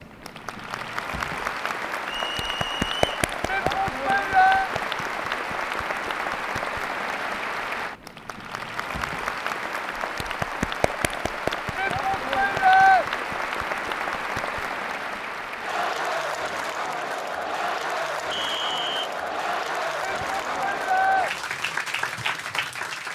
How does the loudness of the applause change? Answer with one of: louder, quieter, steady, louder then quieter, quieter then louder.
steady.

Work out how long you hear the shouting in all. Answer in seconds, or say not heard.
4 s.